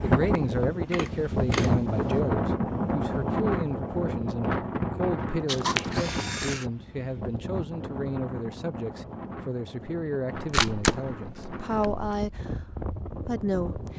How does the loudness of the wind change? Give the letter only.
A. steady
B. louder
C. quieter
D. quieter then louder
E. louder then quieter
C.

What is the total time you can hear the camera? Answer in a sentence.
You can hear the camera for 4 seconds altogether.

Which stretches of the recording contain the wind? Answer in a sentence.
The wind can be heard from 0.0 to 13.9 s.